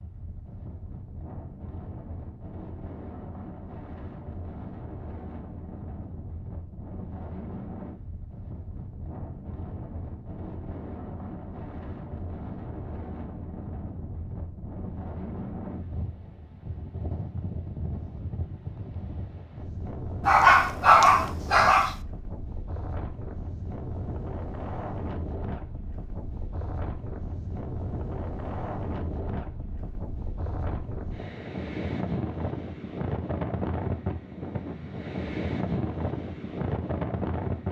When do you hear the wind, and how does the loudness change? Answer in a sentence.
The wind can be heard from 0.0 to 37.6 s, getting louder.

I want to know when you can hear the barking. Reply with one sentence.
You can hear the barking from 20.2 to 21.9 s.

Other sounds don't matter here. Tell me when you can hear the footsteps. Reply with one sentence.
The footsteps can't be heard in this clip.